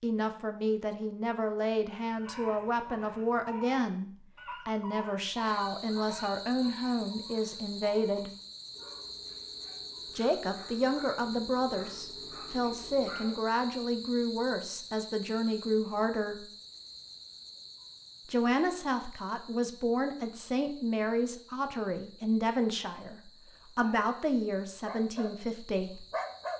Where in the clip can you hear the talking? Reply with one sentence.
You can hear the talking from 0.0 to 8.3 s, from 10.2 to 16.5 s and from 18.2 to 26.1 s.